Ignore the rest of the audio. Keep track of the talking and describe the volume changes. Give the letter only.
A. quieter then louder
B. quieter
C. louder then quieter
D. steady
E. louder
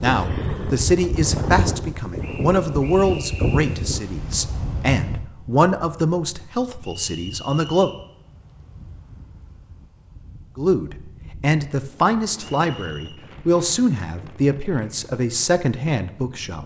D.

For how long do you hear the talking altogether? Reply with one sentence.
The talking can be heard for 14 seconds in total.